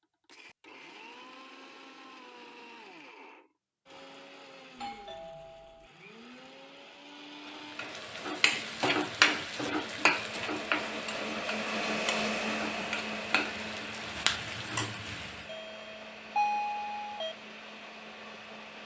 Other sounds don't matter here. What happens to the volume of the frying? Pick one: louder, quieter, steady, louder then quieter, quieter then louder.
quieter then louder.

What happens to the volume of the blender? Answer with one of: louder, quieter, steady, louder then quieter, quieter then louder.
louder then quieter.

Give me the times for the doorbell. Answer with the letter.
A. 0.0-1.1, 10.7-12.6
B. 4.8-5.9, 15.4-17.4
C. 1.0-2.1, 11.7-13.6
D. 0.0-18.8
B.